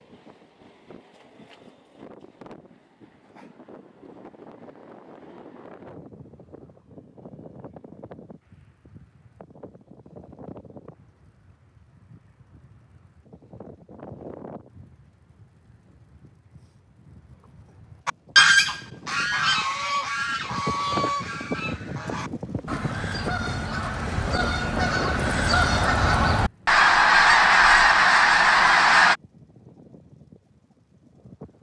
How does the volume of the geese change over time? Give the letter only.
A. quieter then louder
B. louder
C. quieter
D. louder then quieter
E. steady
A.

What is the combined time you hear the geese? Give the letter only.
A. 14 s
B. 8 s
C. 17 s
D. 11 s
D.